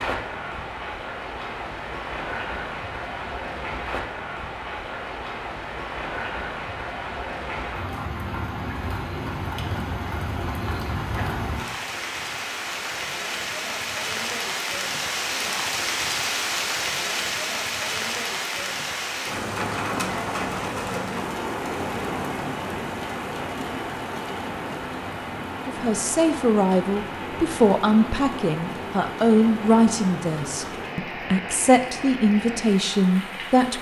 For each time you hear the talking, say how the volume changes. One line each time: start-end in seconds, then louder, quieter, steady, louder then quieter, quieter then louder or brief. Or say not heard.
25.6-33.7 steady.